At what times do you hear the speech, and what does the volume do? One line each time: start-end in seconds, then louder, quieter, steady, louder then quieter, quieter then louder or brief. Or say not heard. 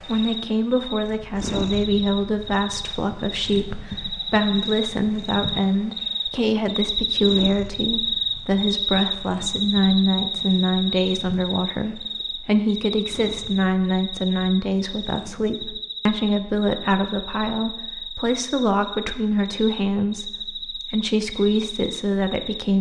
0.1-22.7 steady.